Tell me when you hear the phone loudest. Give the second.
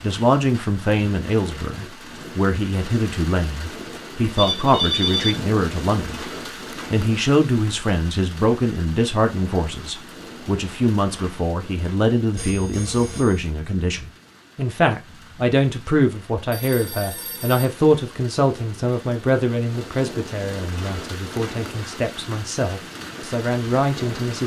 5 s.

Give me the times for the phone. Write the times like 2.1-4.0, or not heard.
4.3-5.3, 12.3-13.4, 16.5-17.7.